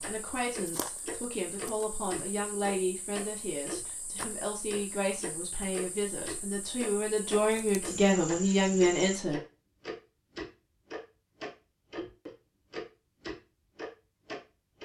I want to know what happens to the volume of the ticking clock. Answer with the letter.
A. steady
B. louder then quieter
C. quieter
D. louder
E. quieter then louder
A.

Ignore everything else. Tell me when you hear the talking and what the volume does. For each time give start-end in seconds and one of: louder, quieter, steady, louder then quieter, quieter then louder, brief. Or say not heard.
0.0-9.4 louder.